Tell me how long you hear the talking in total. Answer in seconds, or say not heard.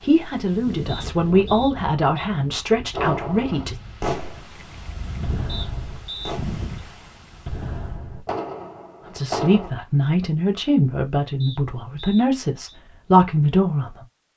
9 s.